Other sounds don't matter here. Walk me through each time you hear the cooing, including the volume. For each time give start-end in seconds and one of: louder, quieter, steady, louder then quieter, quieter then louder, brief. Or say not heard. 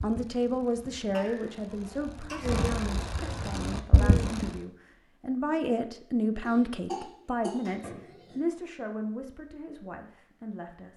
0.0-4.5 louder.